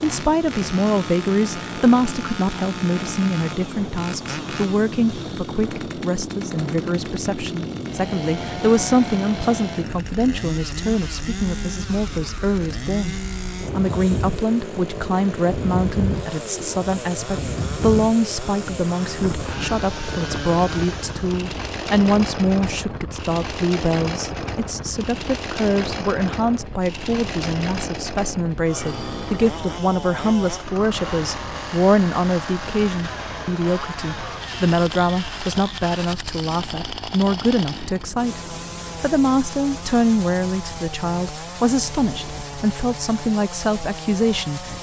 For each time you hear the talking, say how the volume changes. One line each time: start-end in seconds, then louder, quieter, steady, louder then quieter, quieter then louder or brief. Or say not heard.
0.0-44.7 steady.